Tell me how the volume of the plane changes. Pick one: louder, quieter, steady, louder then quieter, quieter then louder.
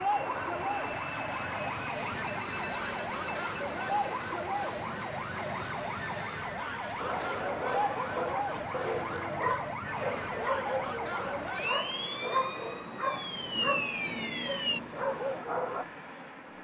quieter.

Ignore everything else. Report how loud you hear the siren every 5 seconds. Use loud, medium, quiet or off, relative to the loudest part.
loud, loud, loud, off.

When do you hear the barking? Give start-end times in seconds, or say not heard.
7.0-15.8.